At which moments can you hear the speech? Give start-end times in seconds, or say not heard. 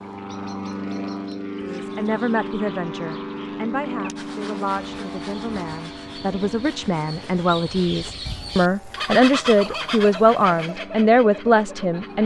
1.6-12.2.